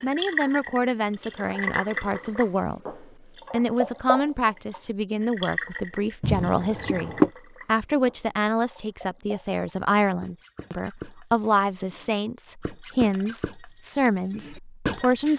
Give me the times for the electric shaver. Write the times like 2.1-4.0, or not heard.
not heard.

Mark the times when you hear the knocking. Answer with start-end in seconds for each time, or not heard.
6.2-7.3.